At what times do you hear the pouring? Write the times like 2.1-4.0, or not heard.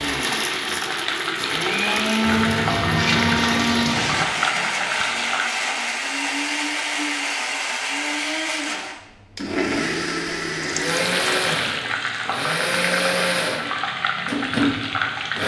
2.2-4.2, 10.6-11.6.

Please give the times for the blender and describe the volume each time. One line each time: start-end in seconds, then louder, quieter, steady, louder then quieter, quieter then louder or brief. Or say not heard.
0.0-15.4 steady.